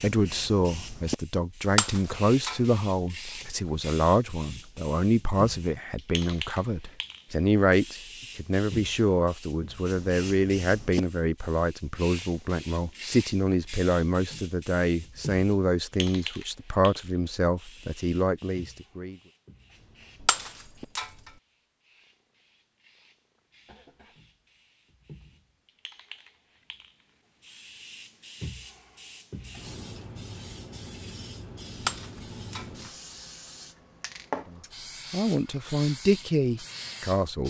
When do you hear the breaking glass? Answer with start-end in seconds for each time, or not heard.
1.8-2.8, 20.2-21.3, 31.8-32.6.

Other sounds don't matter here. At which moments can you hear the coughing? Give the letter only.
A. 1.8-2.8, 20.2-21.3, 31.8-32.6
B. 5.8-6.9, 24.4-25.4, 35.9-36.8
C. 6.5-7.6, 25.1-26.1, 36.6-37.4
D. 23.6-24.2
D.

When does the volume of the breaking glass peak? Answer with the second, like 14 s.
2 s.